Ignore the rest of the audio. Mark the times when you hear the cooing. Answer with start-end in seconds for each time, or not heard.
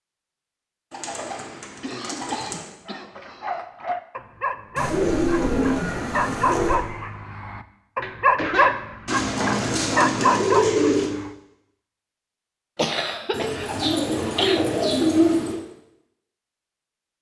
0.9-2.6, 4.8-6.8, 9.1-11.1, 13.3-15.6.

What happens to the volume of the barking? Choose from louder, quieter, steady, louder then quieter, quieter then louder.
louder.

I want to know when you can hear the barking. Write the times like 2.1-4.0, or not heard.
2.9-11.3.